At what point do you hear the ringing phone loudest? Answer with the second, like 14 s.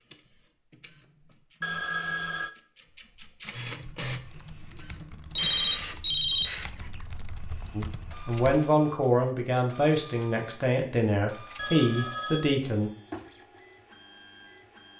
6 s.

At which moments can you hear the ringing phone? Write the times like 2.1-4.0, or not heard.
1.6-2.5, 5.3-6.5, 11.6-12.6.